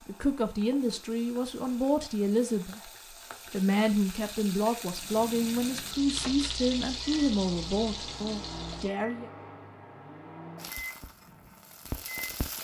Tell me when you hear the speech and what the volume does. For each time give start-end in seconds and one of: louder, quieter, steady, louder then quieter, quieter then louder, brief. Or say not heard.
0.1-2.9 brief
3.5-9.3 quieter.